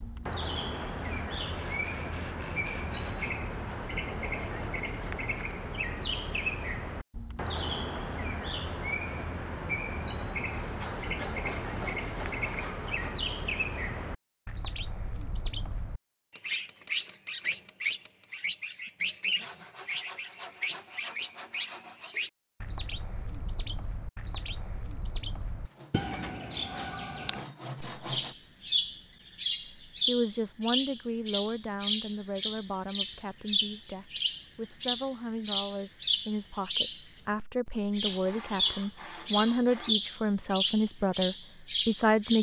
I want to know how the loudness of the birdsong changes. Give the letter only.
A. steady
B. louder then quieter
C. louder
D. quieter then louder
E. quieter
A.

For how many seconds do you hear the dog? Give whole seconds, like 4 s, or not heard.
not heard.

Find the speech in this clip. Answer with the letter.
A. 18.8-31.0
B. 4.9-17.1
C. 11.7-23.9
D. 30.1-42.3
D.